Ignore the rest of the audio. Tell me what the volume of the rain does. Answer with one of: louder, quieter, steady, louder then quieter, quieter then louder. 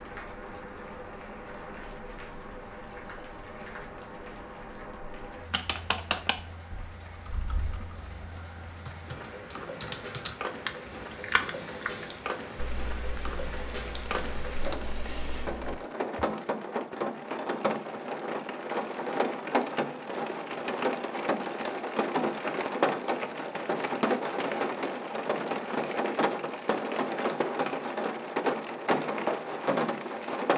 louder.